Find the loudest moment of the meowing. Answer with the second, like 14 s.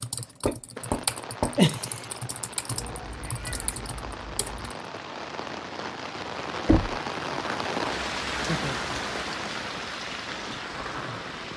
3 s.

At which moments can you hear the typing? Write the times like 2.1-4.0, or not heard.
0.0-4.7.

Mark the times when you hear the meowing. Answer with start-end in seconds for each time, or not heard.
2.7-4.8.